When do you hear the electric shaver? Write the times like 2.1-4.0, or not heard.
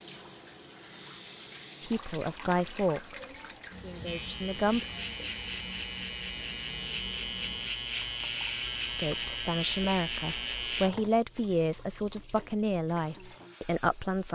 4.0-10.9.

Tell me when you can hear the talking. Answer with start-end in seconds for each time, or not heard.
1.8-4.8, 8.9-14.3.